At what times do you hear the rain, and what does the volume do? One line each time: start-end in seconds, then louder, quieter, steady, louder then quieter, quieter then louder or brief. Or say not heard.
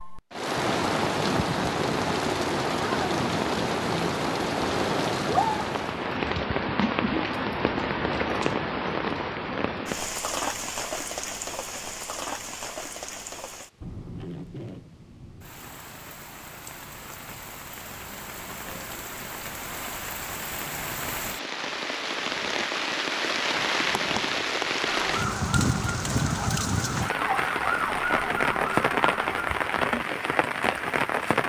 0.0-31.4 quieter then louder.